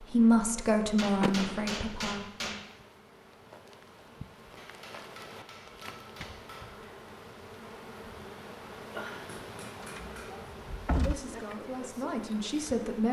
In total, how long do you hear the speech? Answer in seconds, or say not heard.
4 s.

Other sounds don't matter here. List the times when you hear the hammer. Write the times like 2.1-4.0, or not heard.
0.9-2.6, 4.5-6.8, 9.2-10.5.